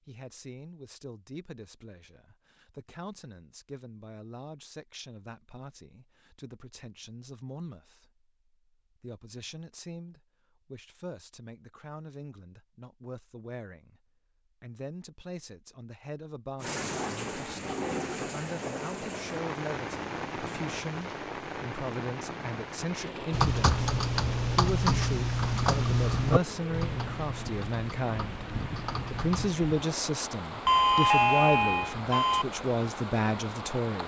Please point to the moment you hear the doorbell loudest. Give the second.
31 s.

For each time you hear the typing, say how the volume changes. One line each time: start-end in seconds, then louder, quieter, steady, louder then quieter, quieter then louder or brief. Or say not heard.
23.3-29.5 quieter.